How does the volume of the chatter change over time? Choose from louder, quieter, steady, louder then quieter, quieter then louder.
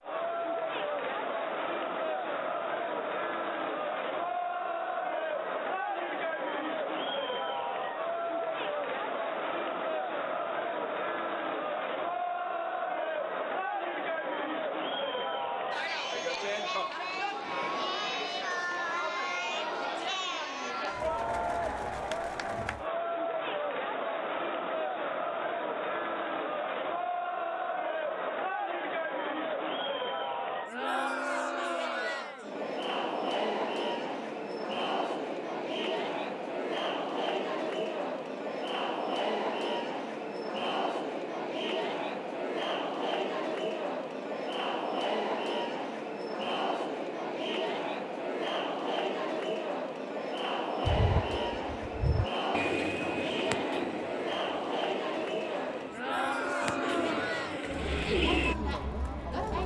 steady.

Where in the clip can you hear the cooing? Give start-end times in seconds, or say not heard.
50.8-58.5.